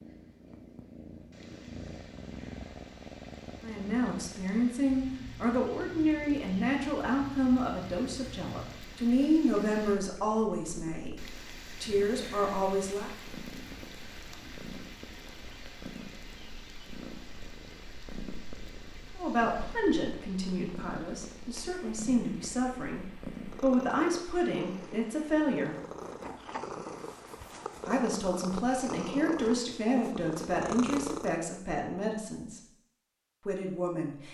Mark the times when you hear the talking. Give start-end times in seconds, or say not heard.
3.6-13.1, 19.1-25.8, 27.9-32.6, 33.5-34.2.